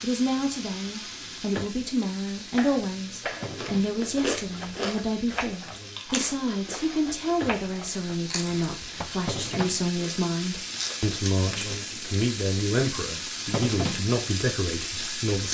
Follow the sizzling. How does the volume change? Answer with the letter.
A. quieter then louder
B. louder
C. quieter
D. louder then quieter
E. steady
B.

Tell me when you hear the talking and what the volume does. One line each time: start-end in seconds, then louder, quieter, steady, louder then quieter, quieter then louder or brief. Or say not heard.
0.0-15.4 steady.